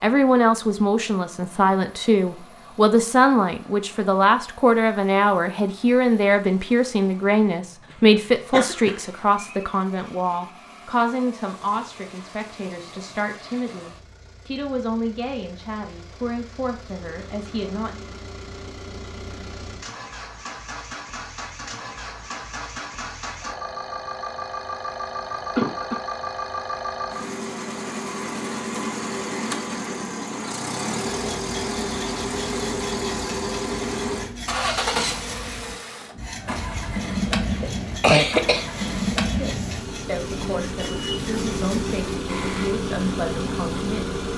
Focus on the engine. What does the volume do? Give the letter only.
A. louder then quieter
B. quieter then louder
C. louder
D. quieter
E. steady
C.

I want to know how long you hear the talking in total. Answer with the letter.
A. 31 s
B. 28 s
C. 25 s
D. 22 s
D.